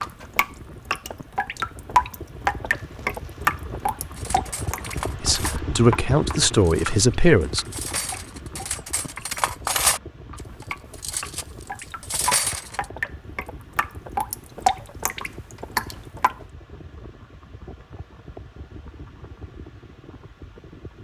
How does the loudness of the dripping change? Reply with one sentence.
The loudness of the dripping goes down, then up.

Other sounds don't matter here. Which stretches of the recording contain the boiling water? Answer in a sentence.
The boiling water can't be heard in this clip.